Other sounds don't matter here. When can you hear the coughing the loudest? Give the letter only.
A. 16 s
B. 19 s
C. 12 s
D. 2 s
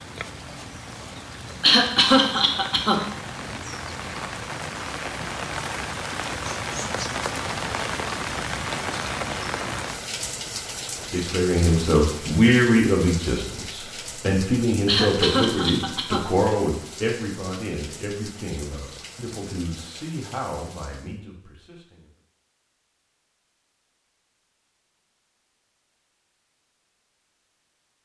D.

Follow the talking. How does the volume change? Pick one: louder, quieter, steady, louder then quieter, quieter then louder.
quieter.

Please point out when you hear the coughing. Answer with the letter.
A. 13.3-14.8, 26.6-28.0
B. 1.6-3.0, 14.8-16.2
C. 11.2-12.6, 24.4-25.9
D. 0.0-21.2
B.